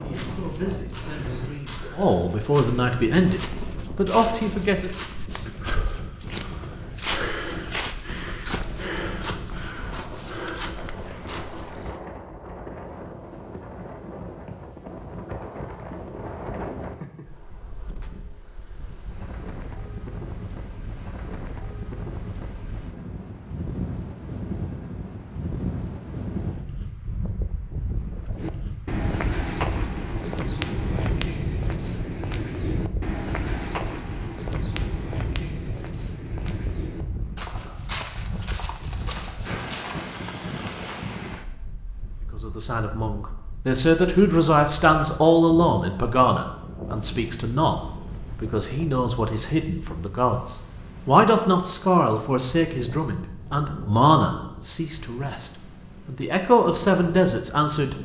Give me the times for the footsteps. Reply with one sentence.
The footsteps can be heard from 0.1 to 12.0 s and from 28.4 to 40.2 s.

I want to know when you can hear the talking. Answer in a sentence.
The talking can be heard from 0.0 to 4.9 s and from 42.4 to 57.9 s.